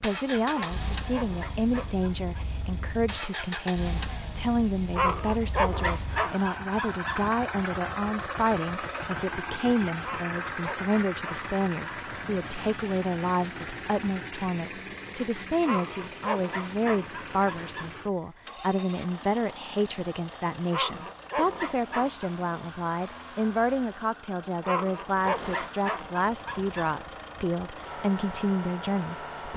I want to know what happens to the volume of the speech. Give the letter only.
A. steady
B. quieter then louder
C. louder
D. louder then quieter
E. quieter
A.